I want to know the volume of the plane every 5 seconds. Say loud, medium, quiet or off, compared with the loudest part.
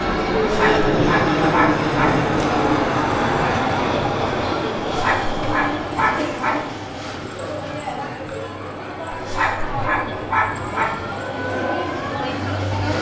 loud, medium, quiet.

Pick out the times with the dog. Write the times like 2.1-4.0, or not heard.
0.4-2.2, 4.8-6.7, 9.1-11.0.